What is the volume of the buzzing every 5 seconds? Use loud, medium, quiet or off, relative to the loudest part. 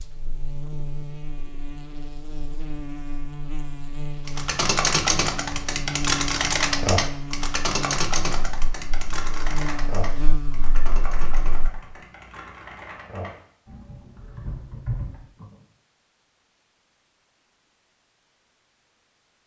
loud, loud, loud, off.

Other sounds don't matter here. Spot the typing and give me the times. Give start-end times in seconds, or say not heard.
4.2-15.7.